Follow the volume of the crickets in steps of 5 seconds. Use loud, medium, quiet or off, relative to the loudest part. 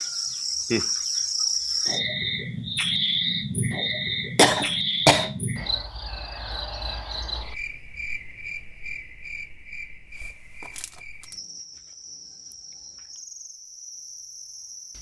loud, medium, quiet.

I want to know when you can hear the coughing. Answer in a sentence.
You can hear the coughing from 4.3 to 5.3 s.